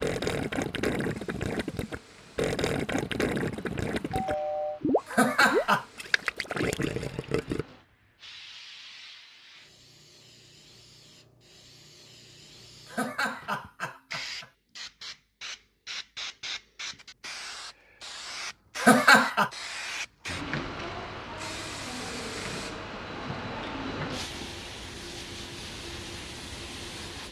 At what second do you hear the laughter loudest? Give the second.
19 s.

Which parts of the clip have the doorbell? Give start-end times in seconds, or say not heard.
4.1-4.8.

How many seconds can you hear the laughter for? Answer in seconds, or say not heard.
3 s.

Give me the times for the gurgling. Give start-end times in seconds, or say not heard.
0.0-7.7.